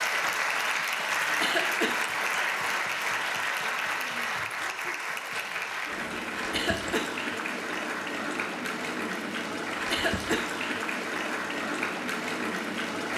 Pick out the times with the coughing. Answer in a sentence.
You can hear the coughing from 1.4 to 1.9 s, from 6.5 to 7.1 s and from 9.9 to 10.4 s.